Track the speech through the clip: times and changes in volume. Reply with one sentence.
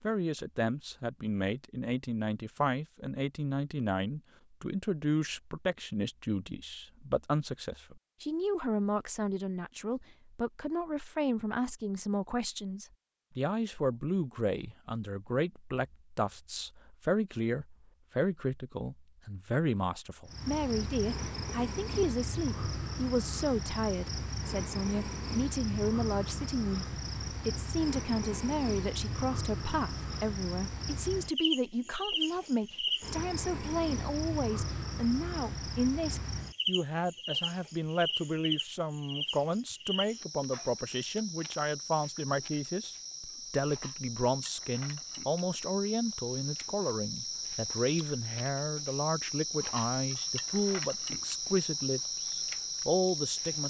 You can hear the speech from 0.0 to 53.6 s, at a steady volume.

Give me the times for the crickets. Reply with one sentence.
The crickets can be heard from 20.2 to 53.6 s.